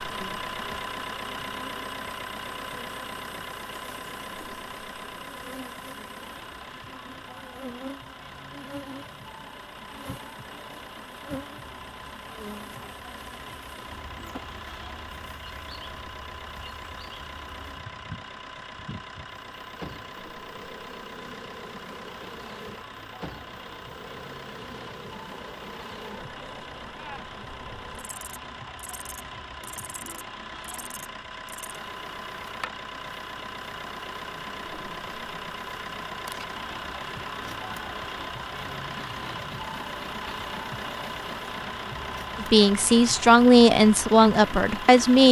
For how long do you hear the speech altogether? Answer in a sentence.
The speech can be heard for 3 seconds in total.